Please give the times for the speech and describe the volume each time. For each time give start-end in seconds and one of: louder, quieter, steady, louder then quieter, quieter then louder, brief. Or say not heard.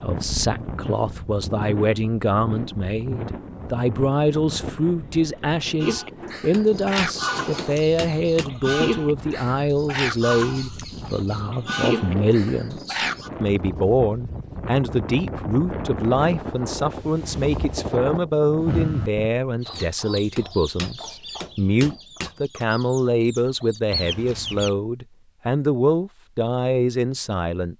0.0-27.7 steady.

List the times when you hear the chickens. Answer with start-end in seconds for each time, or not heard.
5.8-13.3, 19.6-24.8.